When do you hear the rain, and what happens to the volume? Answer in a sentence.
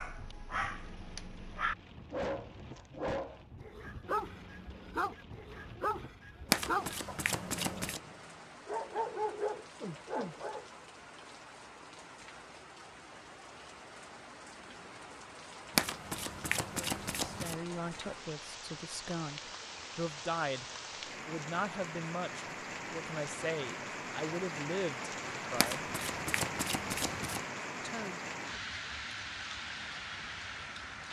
The rain can be heard from 0.0 to 31.0 s, getting louder.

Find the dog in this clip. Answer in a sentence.
You can hear the dog from 0.0 to 10.7 s.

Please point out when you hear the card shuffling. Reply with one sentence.
You can hear the card shuffling from 6.5 to 8.0 s, from 15.8 to 17.6 s and from 25.6 to 27.4 s.